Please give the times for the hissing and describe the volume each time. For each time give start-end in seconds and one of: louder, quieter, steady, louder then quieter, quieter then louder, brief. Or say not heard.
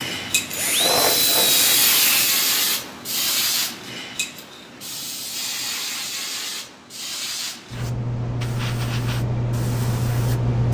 0.0-10.6 quieter then louder.